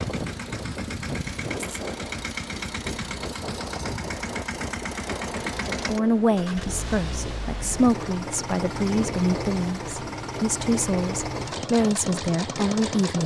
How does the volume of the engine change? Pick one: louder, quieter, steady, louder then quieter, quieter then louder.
steady.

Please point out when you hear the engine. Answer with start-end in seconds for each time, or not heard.
0.0-13.2.